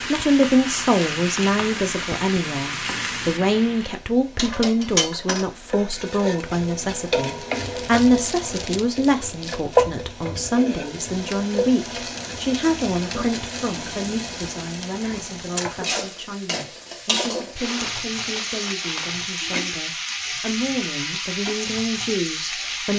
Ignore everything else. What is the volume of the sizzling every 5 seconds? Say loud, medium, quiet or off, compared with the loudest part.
loud, loud, medium, loud, loud.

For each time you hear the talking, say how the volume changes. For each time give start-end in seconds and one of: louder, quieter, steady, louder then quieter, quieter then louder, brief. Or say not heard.
0.0-22.9 quieter.